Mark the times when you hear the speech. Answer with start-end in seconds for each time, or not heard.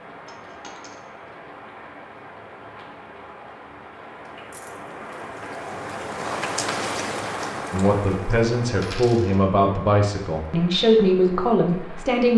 7.7-12.3.